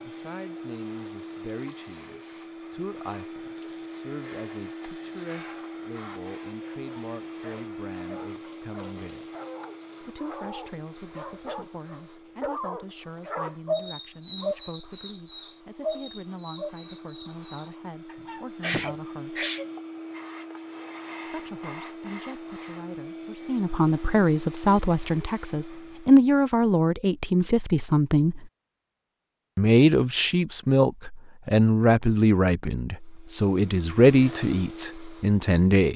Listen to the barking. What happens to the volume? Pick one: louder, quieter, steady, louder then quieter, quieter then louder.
louder then quieter.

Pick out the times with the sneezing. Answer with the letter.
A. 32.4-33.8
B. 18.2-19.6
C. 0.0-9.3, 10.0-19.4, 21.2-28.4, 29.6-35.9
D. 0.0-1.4
B.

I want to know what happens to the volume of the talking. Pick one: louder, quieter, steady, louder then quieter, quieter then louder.
louder.